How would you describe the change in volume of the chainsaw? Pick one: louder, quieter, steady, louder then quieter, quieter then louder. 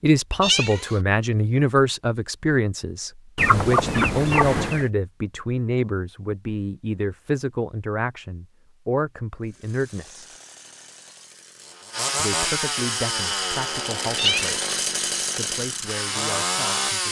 louder.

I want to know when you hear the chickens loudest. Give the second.
4 s.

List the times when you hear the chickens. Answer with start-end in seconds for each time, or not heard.
3.4-4.8.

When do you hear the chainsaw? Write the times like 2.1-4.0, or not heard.
9.4-17.0.